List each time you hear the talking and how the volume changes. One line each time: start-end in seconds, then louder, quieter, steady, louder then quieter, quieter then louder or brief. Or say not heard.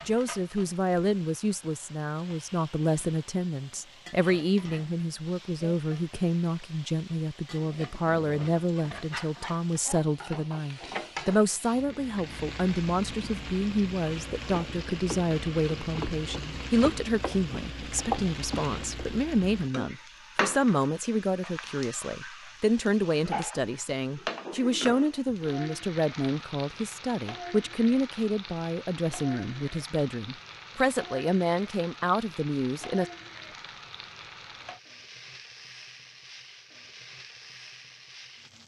0.0-33.0 steady.